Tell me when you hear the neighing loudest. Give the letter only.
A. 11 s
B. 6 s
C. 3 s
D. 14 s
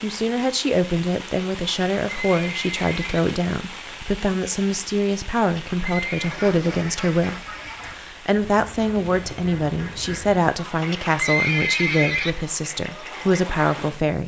A.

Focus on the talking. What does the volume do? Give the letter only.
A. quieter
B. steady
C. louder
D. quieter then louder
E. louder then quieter
B.